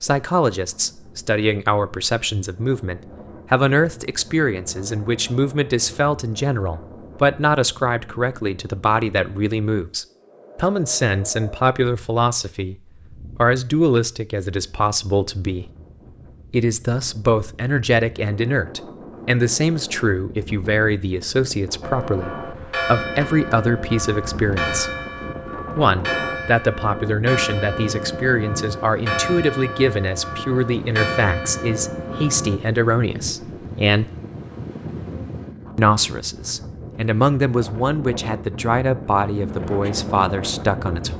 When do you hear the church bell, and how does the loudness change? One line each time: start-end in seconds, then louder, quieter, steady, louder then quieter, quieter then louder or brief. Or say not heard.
21.8-32.6 steady.